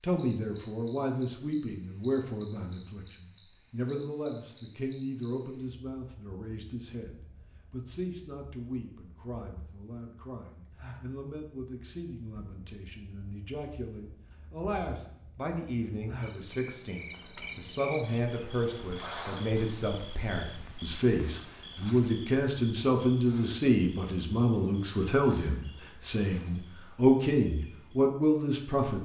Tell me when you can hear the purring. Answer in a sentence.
The purring can't be heard in this clip.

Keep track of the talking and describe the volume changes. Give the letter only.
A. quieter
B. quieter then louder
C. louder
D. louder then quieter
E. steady
B.